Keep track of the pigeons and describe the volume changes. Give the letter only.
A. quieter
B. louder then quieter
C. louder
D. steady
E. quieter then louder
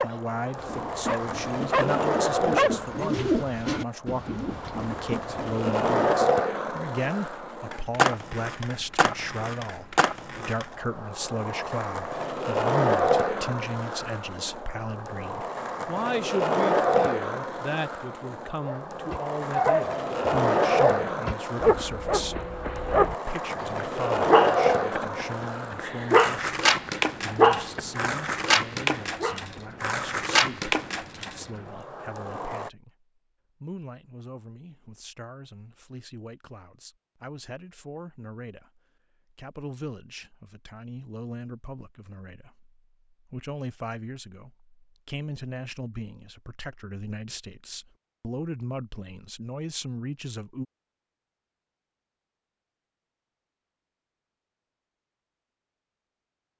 B.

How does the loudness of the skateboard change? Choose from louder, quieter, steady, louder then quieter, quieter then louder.
steady.